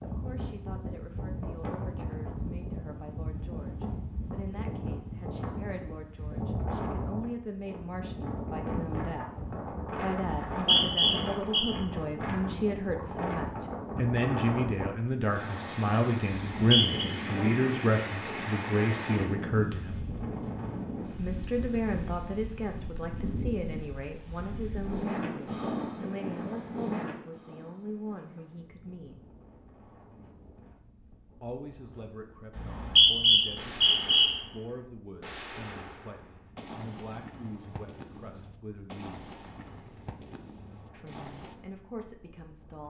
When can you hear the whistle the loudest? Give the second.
33 s.